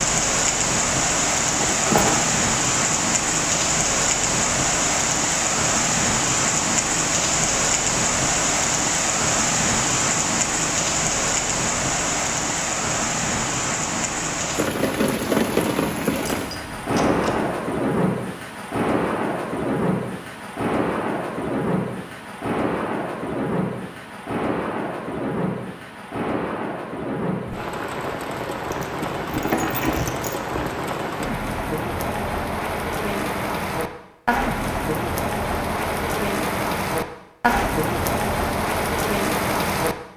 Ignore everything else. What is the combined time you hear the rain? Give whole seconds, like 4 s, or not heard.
40 s.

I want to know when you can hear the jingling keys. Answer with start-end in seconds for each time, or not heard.
1.6-2.3, 16.3-17.4, 28.7-30.7.